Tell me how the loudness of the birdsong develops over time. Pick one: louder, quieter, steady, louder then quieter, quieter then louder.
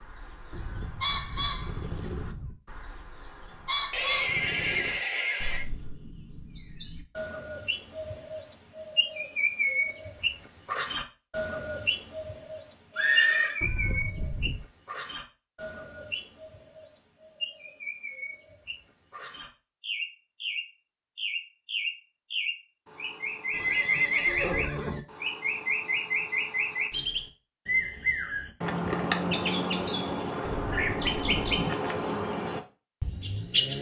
quieter then louder.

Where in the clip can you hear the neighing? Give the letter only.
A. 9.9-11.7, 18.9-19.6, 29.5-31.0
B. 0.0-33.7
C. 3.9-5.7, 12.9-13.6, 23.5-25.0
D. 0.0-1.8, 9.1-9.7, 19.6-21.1
C.